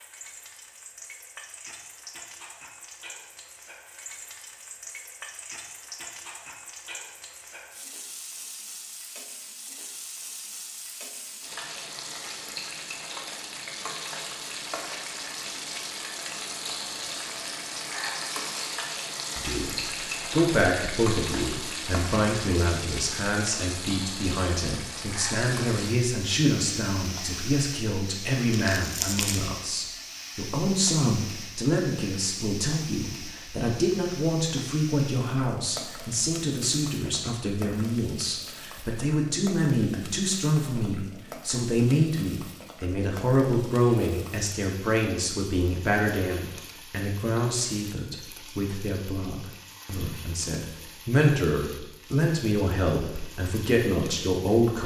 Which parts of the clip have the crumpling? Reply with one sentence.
The crumpling can be heard from 28.5 to 29.5 s.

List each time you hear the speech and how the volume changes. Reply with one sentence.
The speech can be heard from 19.4 to 54.8 s, at a steady volume.